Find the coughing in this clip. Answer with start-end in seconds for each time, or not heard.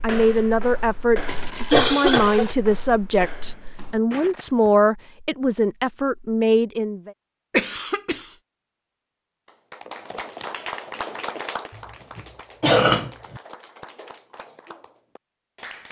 1.2-2.5, 7.5-8.3, 11.8-13.4.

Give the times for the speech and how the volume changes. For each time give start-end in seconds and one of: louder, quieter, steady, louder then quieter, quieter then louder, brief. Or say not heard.
0.0-7.1 steady.